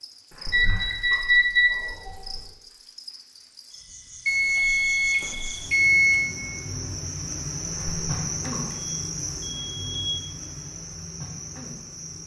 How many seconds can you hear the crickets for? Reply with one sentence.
You can hear the crickets for 12 seconds altogether.